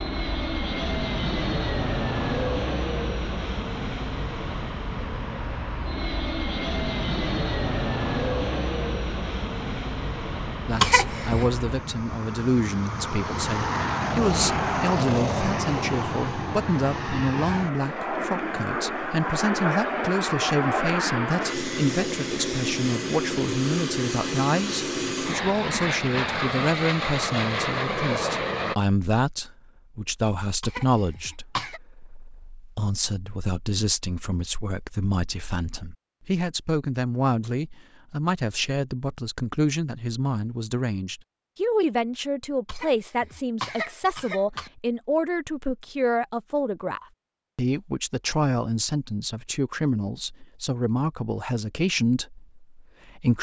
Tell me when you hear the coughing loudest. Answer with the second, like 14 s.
11 s.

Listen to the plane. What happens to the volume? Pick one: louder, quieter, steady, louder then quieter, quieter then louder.
steady.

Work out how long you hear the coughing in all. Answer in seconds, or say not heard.
4 s.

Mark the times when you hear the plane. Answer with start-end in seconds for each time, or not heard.
0.0-28.8.